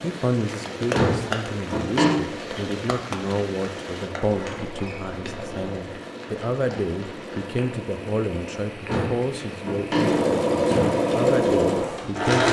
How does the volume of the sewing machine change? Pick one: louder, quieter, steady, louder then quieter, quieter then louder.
louder.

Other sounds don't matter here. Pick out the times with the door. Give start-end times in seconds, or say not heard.
0.9-2.1, 4.2-5.7, 8.8-10.8.